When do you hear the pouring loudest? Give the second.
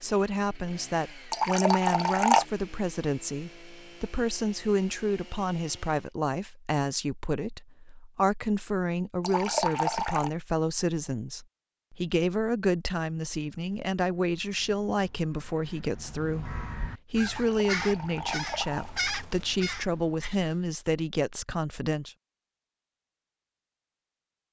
2 s.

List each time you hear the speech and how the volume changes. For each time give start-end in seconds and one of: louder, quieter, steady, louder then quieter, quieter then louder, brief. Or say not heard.
0.0-22.1 steady.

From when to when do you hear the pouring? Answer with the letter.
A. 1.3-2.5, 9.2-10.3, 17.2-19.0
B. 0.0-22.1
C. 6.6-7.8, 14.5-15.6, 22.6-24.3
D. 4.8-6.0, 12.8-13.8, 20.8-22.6
A.